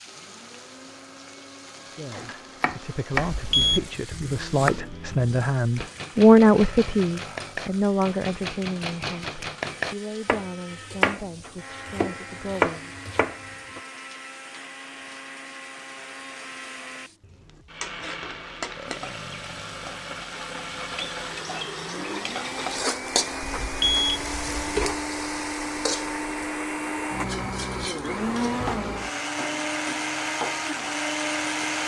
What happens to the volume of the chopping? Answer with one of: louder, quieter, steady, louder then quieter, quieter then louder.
quieter then louder.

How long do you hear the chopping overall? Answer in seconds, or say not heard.
12 s.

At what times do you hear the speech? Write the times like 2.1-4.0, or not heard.
1.9-12.9.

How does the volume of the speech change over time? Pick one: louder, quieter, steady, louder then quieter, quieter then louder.
louder then quieter.